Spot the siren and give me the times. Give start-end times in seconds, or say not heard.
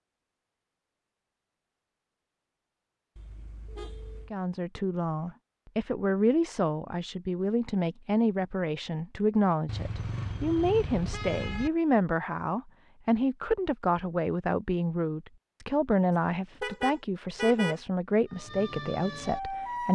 18.2-19.9.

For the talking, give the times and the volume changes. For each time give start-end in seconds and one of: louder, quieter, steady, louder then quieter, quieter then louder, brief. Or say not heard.
4.3-19.9 steady.